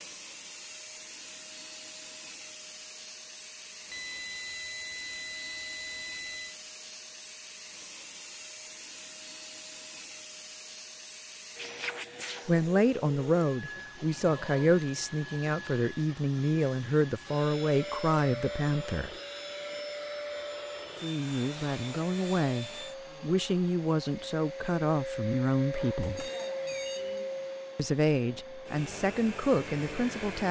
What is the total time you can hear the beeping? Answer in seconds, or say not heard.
4 s.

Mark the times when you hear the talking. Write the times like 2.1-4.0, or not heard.
12.4-19.1, 21.0-26.3, 27.8-30.4.